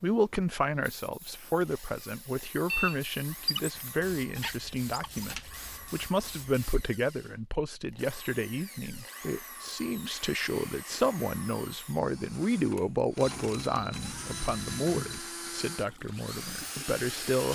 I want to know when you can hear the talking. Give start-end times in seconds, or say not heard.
0.0-17.4.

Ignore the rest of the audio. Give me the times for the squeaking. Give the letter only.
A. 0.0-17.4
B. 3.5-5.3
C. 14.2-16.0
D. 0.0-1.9
B.